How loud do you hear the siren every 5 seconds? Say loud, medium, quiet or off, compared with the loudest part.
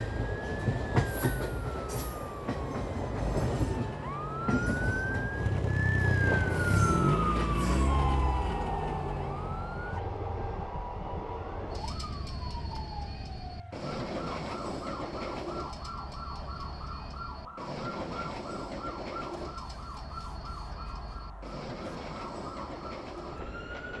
medium, loud, quiet, quiet, quiet.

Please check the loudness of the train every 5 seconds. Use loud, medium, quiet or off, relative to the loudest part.
loud, loud, medium, medium, medium.